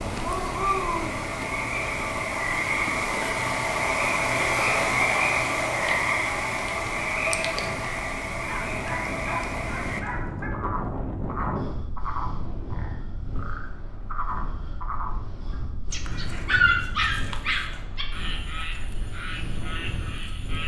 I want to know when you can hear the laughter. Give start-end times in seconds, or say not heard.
not heard.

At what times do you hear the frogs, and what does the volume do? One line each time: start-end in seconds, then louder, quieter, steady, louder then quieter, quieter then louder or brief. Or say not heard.
0.0-20.6 quieter.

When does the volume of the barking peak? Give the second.
17 s.